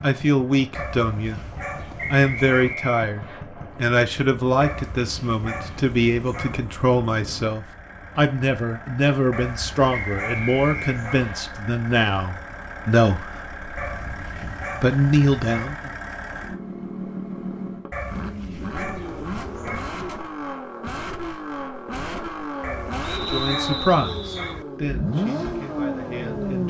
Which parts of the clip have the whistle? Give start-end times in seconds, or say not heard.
1.9-3.4, 9.9-11.4, 23.1-24.6.